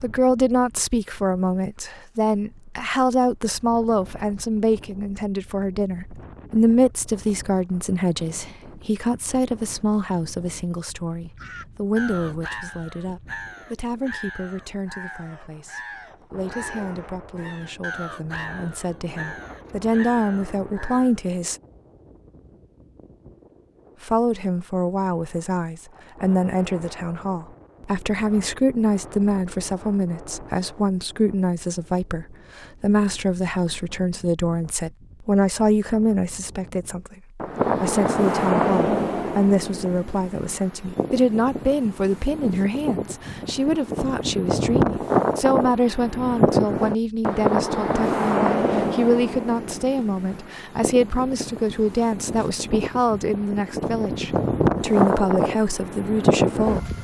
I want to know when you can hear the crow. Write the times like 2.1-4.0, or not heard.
11.3-21.2.